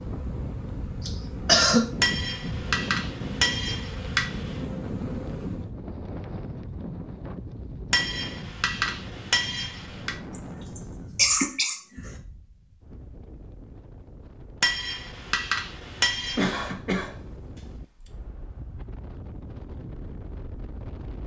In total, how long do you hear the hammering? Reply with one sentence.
You can hear the hammering for 7 seconds altogether.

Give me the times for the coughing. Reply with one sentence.
You can hear the coughing from 1.1 to 1.9 s, from 10.3 to 12.0 s and from 16.4 to 18.1 s.